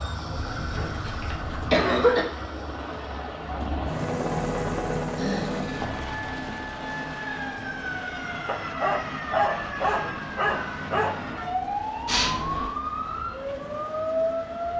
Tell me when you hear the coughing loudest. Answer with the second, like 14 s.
2 s.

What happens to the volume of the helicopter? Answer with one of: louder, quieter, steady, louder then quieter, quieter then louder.
louder then quieter.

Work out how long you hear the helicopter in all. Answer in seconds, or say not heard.
15 s.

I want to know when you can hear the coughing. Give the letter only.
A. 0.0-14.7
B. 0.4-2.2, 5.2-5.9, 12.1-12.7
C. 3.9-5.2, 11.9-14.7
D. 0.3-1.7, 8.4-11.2
B.